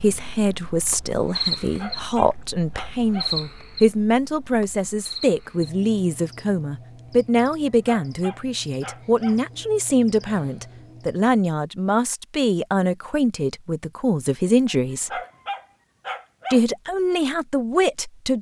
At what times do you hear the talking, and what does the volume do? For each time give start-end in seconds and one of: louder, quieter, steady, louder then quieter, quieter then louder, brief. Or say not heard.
0.0-15.2 steady
16.5-18.3 brief.